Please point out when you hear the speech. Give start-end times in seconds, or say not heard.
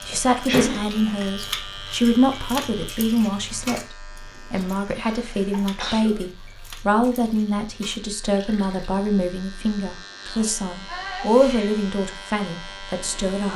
0.1-13.5.